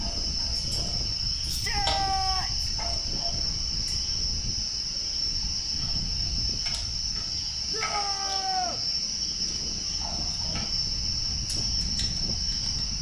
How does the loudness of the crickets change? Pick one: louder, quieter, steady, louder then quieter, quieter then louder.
steady.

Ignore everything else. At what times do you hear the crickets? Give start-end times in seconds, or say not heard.
0.0-12.9.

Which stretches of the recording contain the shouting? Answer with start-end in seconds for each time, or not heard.
1.4-2.7, 7.7-8.8.